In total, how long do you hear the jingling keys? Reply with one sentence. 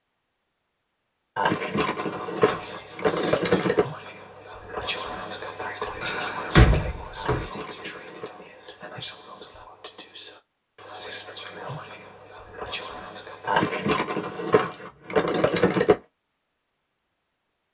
The jingling keys can be heard for 6 seconds in total.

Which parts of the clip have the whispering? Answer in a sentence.
The whispering can be heard from 1.9 to 13.7 s.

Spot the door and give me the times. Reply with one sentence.
You can hear the door from 6.0 to 7.5 s.